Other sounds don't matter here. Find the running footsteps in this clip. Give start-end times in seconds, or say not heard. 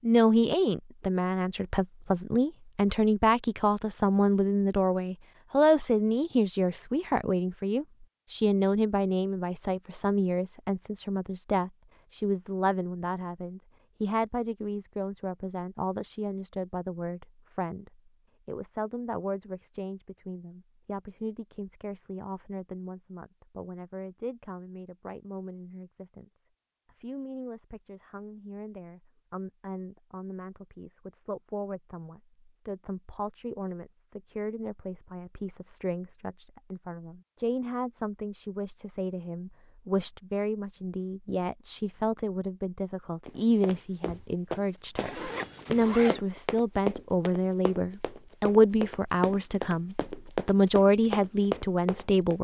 43.2-52.4.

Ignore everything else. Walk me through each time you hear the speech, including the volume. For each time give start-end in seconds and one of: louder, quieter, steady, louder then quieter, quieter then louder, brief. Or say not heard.
0.0-52.4 quieter then louder.